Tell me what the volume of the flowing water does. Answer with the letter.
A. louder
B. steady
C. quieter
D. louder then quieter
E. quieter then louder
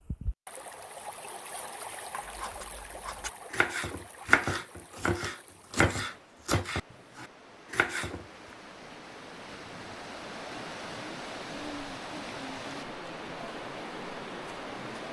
E.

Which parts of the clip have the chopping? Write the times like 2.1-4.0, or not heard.
2.1-8.2.